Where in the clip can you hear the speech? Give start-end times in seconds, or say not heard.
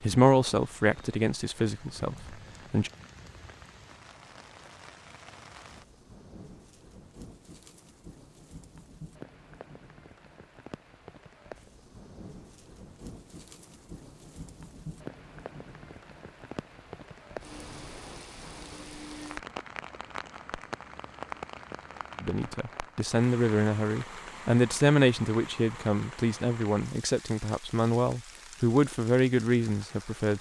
0.0-2.9, 22.2-30.3.